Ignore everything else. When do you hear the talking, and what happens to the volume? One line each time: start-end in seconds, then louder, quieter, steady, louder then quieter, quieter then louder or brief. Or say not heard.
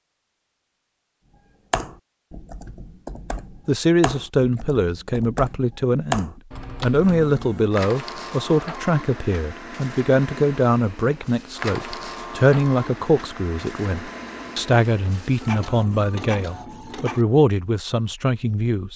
3.6-18.9 steady.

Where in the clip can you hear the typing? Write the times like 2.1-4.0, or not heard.
1.7-7.2.